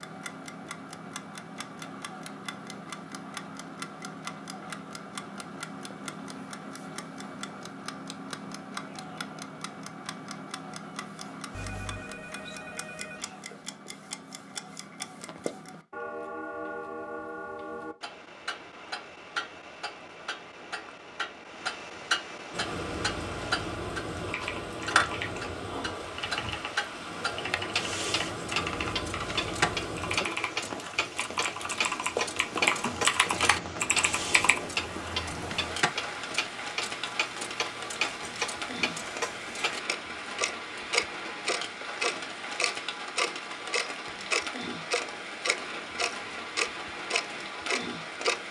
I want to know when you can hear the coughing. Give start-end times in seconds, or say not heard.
not heard.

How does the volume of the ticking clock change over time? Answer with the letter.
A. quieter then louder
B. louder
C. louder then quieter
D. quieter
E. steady
B.